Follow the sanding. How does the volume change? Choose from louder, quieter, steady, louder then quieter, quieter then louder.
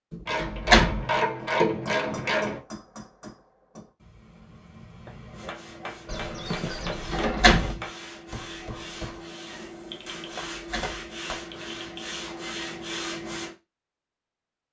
louder.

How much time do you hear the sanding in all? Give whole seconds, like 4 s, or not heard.
8 s.